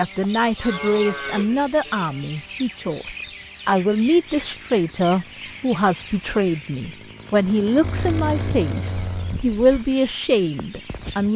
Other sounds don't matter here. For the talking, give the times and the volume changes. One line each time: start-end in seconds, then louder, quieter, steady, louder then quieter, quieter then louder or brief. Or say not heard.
0.0-11.3 steady.